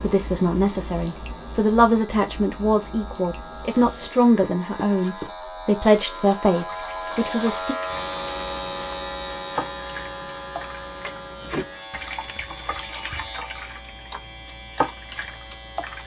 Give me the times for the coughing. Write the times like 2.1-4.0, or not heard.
not heard.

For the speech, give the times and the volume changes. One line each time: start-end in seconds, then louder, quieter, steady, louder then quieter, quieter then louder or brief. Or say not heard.
0.0-7.8 steady.